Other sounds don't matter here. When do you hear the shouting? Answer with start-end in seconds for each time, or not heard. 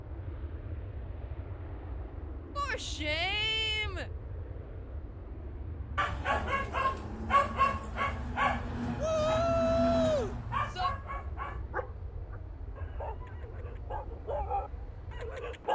2.5-4.1, 8.9-10.9.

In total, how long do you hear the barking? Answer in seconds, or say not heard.
10 s.